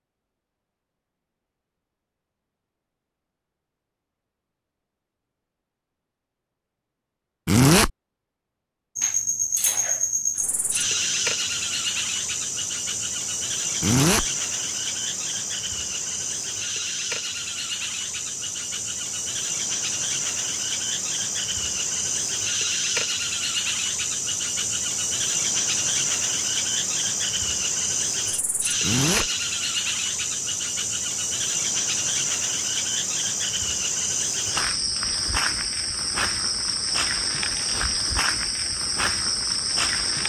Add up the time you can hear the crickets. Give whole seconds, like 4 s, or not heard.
31 s.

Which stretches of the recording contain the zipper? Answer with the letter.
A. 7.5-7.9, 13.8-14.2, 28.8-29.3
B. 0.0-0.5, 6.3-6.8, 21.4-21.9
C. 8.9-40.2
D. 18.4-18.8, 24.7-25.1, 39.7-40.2
A.